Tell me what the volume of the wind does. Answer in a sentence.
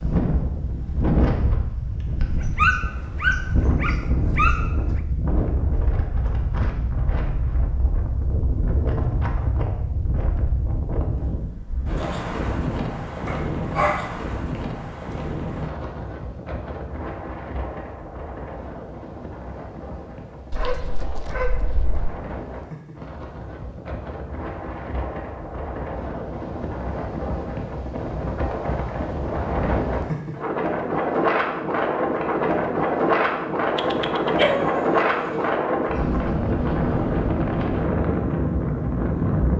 The volume of the wind goes down, then up.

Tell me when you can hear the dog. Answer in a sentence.
The dog can be heard from 2.4 to 4.7 s, from 13.2 to 14.1 s, from 20.5 to 22.1 s and from 33.8 to 35.5 s.